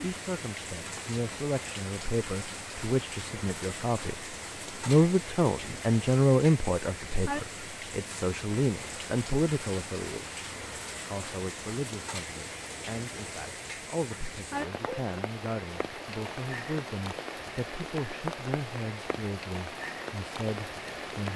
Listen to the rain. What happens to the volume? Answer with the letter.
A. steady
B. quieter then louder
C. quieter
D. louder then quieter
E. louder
A.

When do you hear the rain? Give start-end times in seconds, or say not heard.
0.0-21.3.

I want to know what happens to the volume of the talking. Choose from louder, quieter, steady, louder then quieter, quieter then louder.
louder then quieter.